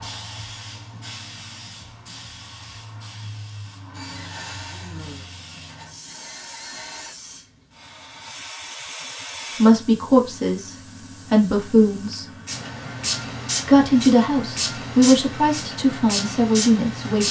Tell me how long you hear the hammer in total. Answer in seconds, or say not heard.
not heard.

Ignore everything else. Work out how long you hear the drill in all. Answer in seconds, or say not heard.
3 s.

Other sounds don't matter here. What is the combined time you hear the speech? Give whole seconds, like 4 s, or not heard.
6 s.